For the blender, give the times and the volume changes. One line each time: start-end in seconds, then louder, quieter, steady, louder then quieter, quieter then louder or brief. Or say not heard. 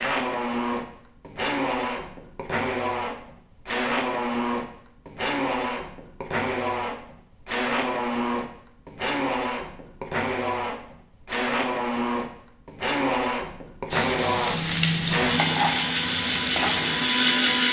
0.0-17.6 steady.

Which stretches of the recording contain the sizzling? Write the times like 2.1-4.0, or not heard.
13.9-17.6.